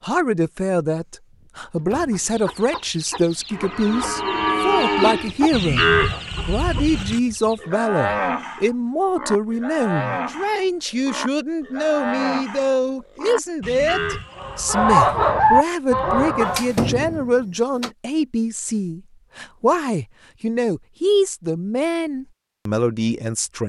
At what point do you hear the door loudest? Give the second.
17 s.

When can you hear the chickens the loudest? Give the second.
15 s.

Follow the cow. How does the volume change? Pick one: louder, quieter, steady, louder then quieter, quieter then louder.
quieter.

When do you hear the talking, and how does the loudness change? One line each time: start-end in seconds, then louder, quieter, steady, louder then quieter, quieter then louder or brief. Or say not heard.
0.0-23.6 steady.